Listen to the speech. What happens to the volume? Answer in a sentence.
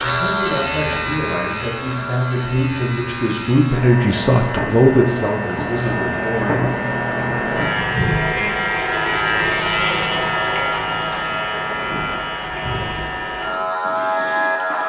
The volume of the speech goes up, then down.